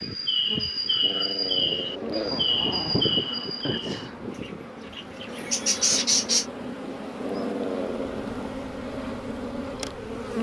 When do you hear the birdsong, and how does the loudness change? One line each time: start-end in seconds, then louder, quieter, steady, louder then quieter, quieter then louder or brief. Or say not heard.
0.0-6.5 quieter then louder.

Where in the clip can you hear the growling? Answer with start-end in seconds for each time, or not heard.
1.0-3.0, 7.2-8.3.